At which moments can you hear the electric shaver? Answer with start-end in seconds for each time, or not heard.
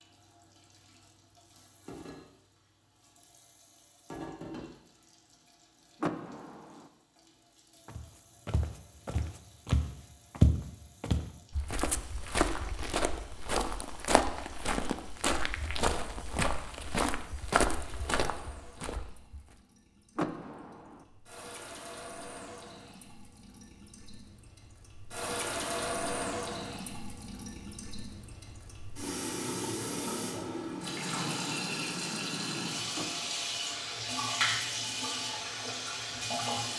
not heard.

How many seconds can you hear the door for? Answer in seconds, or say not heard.
3 s.